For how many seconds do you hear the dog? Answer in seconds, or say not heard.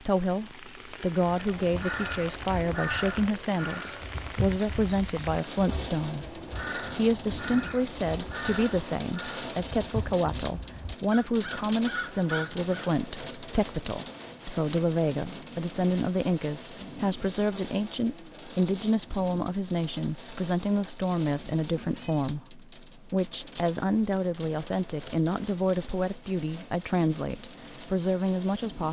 not heard.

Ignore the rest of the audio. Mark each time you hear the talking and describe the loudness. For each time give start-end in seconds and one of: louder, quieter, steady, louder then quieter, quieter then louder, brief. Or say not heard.
0.0-28.8 steady.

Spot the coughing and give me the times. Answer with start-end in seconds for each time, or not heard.
not heard.